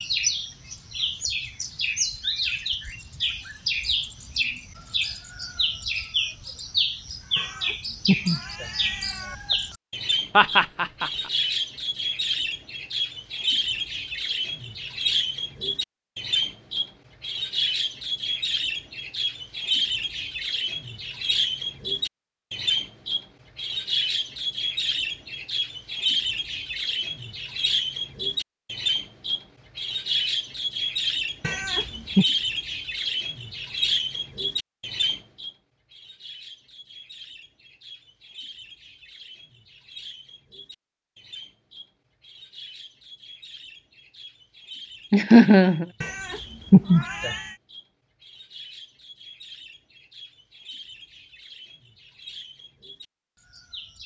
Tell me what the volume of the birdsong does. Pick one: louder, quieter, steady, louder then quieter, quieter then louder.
quieter.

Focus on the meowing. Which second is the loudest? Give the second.
47 s.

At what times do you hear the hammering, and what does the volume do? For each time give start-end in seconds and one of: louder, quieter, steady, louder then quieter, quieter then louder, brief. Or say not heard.
not heard.